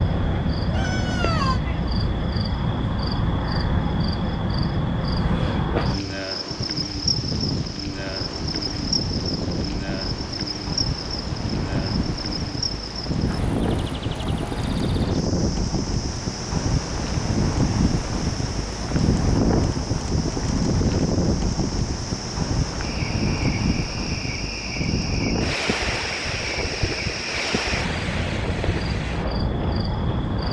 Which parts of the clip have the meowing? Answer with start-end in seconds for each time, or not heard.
0.7-1.6.